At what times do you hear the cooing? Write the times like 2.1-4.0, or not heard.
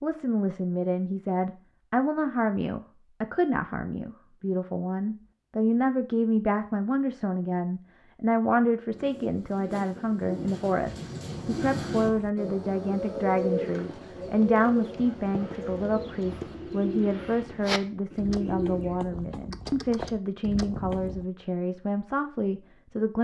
8.9-18.9.